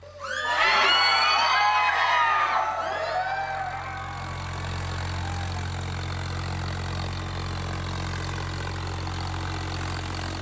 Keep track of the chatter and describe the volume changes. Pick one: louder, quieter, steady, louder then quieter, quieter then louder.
quieter.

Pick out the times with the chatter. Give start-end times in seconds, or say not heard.
0.1-5.7.